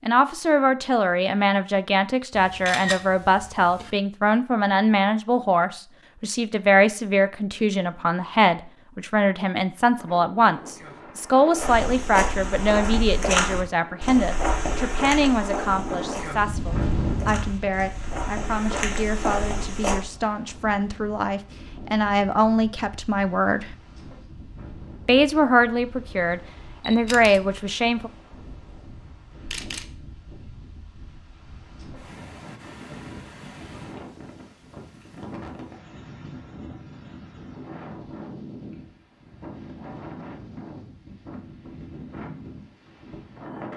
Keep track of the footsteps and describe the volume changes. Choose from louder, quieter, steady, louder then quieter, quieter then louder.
quieter then louder.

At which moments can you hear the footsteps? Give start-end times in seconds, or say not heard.
11.6-20.0.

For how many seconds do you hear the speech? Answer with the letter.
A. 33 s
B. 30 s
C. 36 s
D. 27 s
D.